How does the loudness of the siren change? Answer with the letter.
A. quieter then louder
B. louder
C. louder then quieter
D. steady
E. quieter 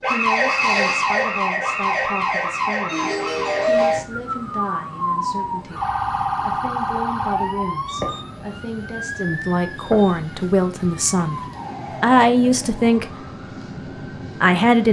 E.